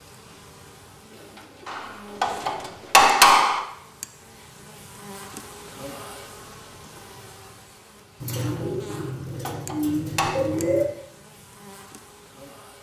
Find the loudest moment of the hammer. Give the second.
3 s.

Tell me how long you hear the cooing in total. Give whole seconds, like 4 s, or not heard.
5 s.